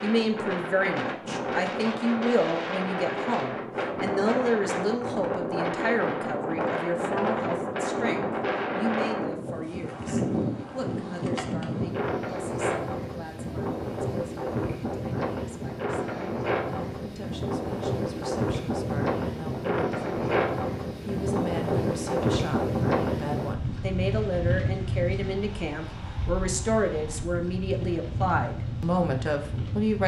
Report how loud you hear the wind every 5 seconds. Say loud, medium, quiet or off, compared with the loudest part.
loud, loud, loud, loud, loud, medium.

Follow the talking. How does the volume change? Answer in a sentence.
The volume of the talking goes down, then up.